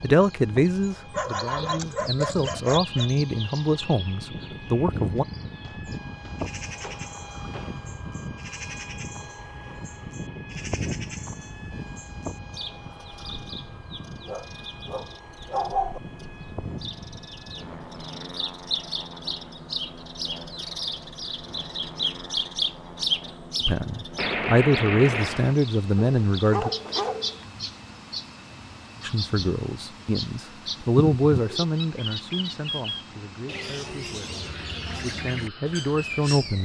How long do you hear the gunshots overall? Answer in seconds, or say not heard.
4 s.